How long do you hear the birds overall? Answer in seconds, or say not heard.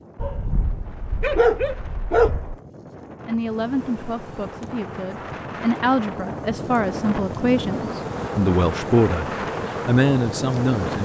not heard.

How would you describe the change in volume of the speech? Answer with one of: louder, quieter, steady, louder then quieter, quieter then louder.
louder.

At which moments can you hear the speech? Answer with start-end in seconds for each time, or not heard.
3.2-11.0.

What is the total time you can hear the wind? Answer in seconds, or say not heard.
11 s.